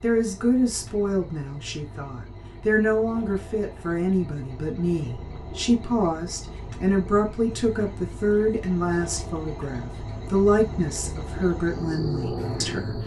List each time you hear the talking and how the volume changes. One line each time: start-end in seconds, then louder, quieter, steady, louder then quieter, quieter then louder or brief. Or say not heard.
0.0-13.0 steady.